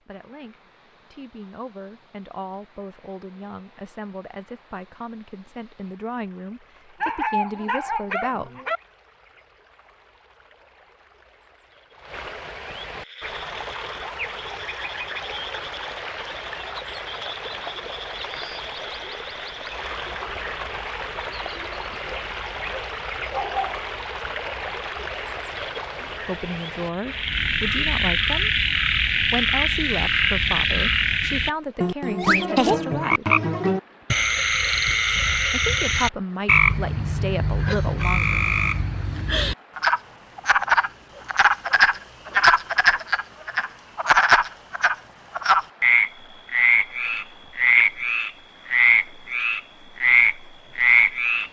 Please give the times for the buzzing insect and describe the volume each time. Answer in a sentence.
The buzzing insect can't be heard in this clip.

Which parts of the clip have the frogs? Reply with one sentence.
The frogs can be heard from 12.9 to 51.4 s.